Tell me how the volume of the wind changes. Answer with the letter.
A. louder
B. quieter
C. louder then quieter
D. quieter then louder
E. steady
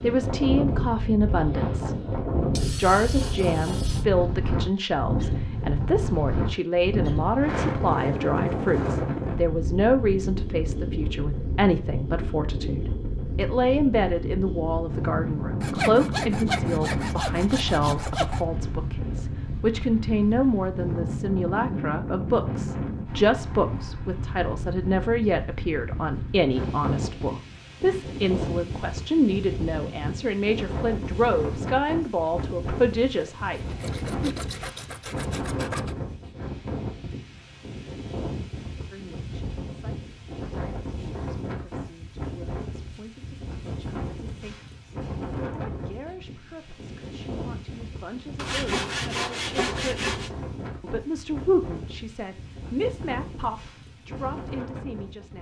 B.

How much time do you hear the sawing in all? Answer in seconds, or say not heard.
9 s.